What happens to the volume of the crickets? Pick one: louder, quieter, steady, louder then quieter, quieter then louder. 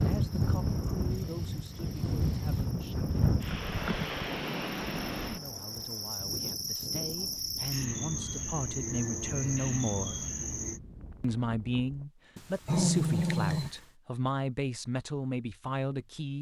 louder.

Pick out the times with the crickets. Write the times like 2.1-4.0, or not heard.
0.0-10.8.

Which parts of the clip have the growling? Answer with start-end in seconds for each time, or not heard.
12.3-13.8.